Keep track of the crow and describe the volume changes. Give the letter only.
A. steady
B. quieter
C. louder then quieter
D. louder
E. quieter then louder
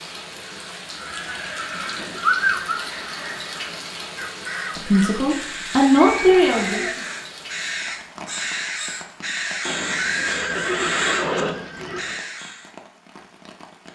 D.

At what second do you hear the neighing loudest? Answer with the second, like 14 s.
2 s.